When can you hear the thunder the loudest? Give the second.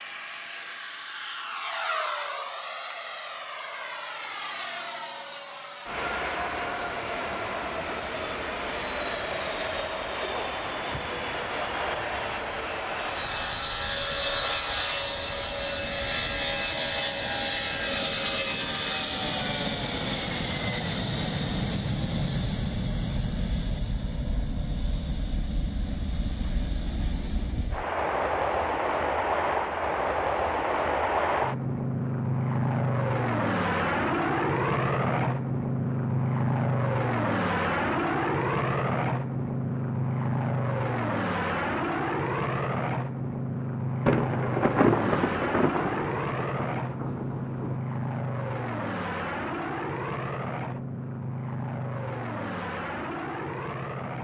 45 s.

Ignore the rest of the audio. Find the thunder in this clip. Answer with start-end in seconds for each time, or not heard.
44.0-47.8.